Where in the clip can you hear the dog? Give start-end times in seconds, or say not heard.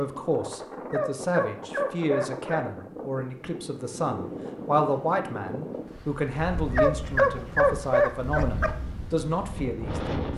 0.8-2.9, 6.7-8.7.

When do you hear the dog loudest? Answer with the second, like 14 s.
7 s.